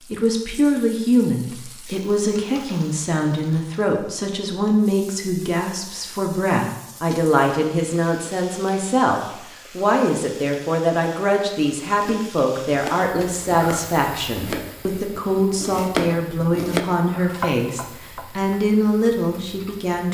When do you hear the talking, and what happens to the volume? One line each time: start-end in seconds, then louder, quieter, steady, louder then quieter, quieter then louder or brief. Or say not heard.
0.0-20.0 steady.